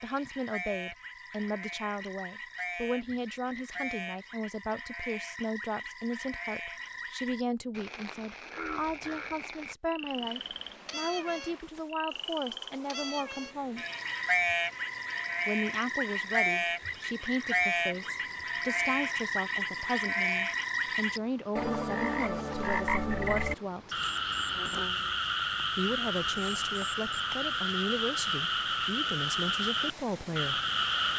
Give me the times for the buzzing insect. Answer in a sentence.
You can't hear the buzzing insect here.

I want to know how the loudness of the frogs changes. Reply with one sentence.
The loudness of the frogs goes up.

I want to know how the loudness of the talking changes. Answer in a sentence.
The loudness of the talking stays about the same.